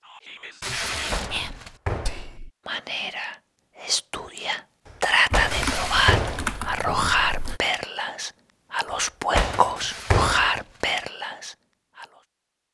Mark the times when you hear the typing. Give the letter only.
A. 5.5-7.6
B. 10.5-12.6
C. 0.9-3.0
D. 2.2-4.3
A.